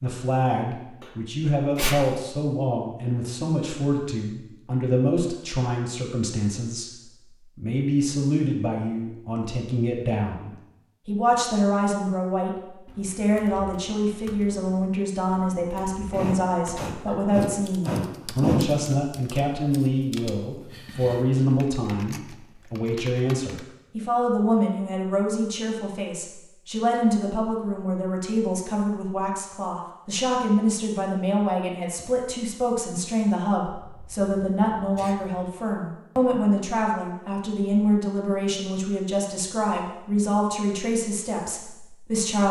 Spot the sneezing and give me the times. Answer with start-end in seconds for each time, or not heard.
1.0-2.0, 16.1-18.7, 33.7-35.5.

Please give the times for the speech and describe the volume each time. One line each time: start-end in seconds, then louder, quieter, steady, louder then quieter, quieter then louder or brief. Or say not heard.
0.0-6.9 steady
7.5-42.4 steady.